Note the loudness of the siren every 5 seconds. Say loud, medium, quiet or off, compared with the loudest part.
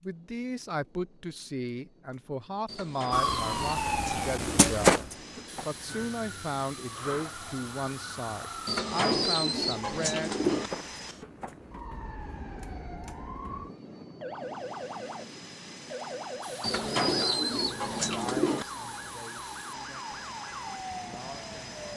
loud, quiet, quiet, quiet, quiet.